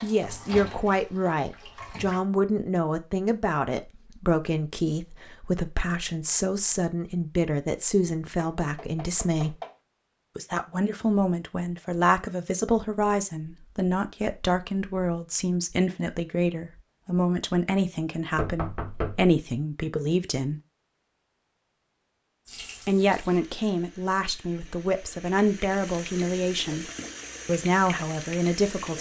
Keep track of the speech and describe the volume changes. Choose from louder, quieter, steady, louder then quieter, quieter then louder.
steady.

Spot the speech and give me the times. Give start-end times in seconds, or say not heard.
0.0-9.6, 10.3-20.6, 22.9-28.9.